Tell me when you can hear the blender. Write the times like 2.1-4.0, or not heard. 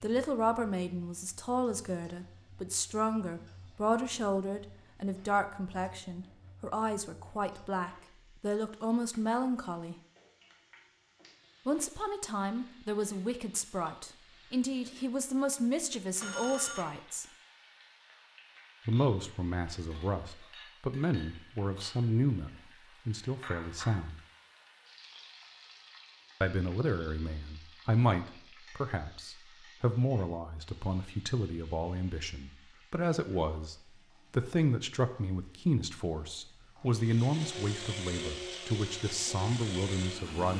36.9-40.5.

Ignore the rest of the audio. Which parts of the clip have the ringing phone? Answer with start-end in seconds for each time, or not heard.
16.2-16.9.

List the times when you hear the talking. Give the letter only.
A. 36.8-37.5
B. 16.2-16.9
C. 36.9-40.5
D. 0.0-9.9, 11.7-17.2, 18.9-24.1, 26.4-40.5
D.